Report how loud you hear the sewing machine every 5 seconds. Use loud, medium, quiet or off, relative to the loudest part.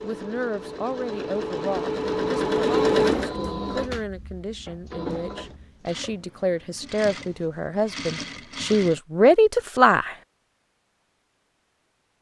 loud, medium, off.